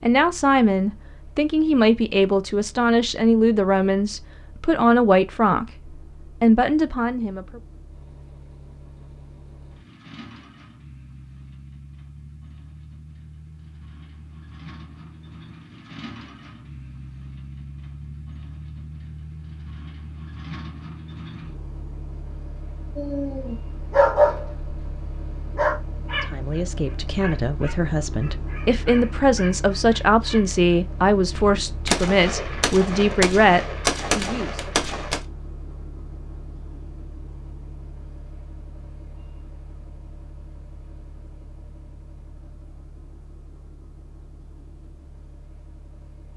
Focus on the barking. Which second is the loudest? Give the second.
24 s.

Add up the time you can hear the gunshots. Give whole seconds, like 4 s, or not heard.
4 s.